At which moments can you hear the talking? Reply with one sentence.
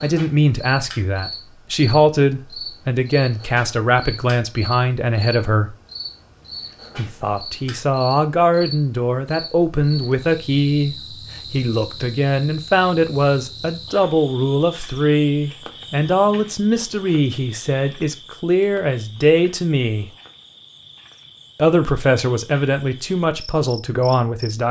The talking can be heard from 0.0 to 5.8 s, from 7.0 to 20.1 s and from 21.6 to 24.6 s.